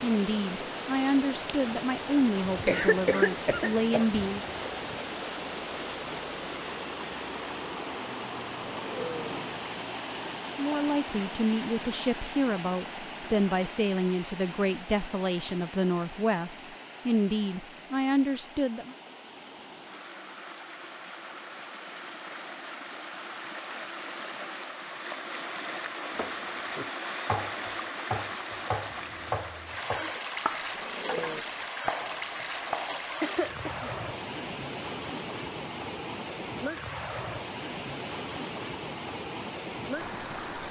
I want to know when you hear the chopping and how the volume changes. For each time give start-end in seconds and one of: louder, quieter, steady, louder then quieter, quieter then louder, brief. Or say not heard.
26.1-33.4 steady.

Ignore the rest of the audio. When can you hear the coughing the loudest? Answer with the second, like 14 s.
3 s.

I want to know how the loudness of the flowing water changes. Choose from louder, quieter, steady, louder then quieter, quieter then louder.
quieter then louder.